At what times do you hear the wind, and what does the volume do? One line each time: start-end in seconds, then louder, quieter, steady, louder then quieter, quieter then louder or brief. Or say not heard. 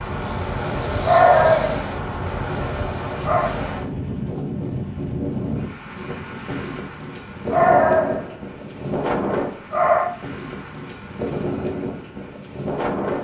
0.0-13.1 steady.